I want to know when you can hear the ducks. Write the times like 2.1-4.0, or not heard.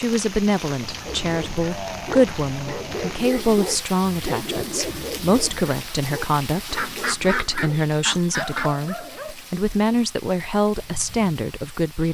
0.8-3.2, 6.7-8.7.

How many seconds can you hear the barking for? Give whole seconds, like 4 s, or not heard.
8 s.